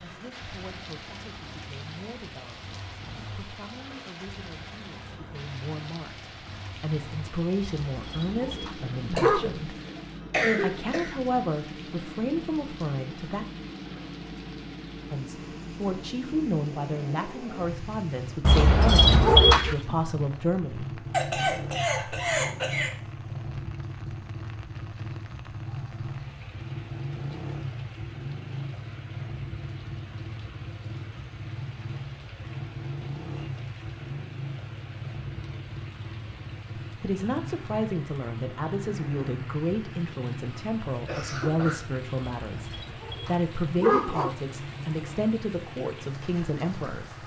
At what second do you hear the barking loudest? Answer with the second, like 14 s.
19 s.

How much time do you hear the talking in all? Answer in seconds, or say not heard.
29 s.